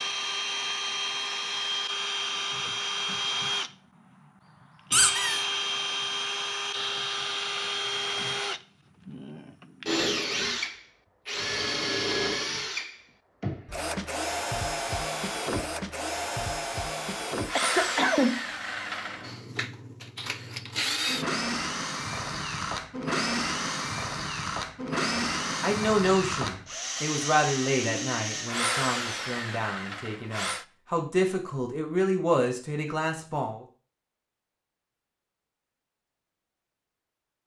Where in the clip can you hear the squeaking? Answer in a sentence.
You can hear the squeaking from 4.9 to 5.5 s.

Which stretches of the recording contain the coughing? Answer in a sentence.
You can hear the coughing from 17.6 to 18.4 s.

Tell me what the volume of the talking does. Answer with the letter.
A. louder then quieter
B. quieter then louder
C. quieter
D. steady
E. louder
B.